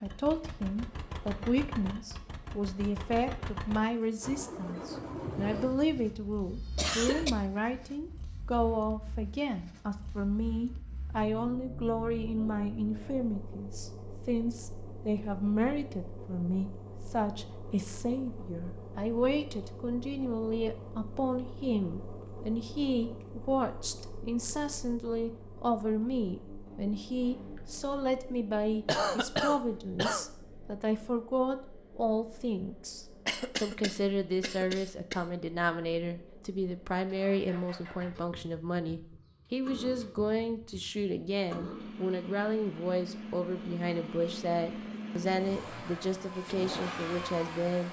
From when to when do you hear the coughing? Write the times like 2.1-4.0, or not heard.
5.3-7.3, 28.9-30.2, 33.2-35.2.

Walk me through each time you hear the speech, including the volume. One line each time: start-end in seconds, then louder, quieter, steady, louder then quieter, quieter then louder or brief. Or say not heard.
0.0-47.8 steady.